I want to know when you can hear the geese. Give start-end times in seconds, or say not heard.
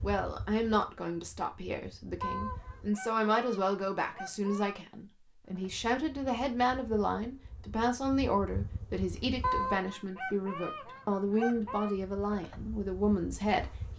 2.2-4.8, 9.4-11.9.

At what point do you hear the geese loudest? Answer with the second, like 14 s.
10 s.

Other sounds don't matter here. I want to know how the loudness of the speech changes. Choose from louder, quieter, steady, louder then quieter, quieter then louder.
steady.